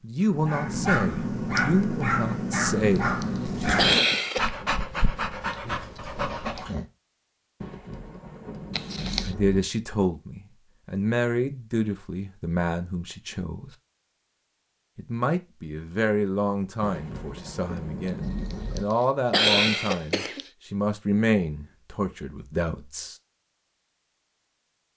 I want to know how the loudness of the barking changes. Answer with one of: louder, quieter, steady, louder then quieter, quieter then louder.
quieter.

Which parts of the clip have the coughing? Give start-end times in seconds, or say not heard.
3.0-4.5, 8.7-9.3, 18.5-20.4.